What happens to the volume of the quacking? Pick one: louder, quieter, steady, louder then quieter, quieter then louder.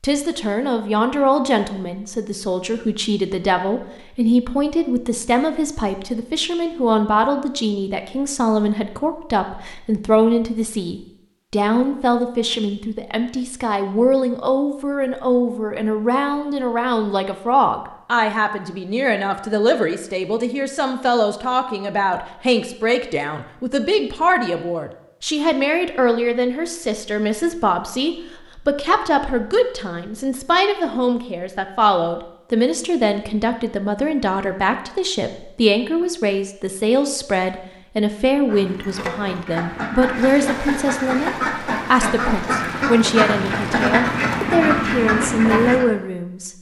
louder.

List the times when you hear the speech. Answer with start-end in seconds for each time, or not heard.
0.0-46.5.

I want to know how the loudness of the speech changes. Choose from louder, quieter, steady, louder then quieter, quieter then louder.
steady.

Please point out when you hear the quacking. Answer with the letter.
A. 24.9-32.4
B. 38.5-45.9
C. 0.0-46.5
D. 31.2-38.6
B.